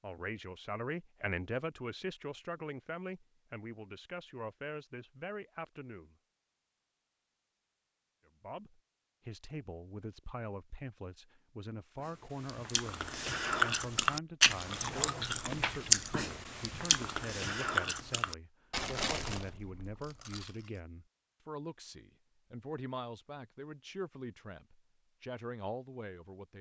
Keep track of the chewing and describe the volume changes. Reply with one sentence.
The loudness of the chewing goes down.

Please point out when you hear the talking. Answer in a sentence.
You can hear the talking from 0.0 to 6.2 s and from 8.4 to 26.5 s.